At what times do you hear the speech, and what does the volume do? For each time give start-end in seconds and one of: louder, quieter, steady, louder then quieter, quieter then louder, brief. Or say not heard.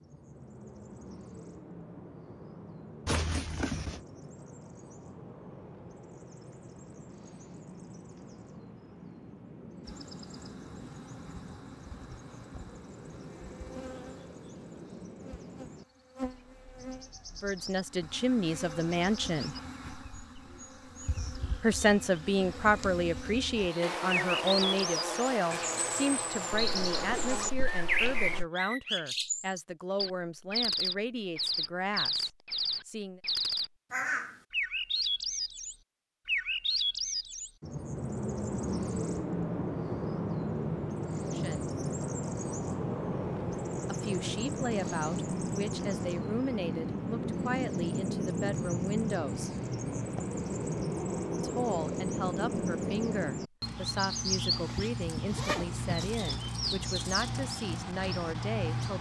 17.4-19.6 brief
21.6-33.2 quieter
41.3-41.7 brief
43.9-49.5 steady
51.4-58.9 steady.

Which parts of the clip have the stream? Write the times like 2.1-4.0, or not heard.
not heard.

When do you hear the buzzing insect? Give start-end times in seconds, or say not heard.
9.8-28.4.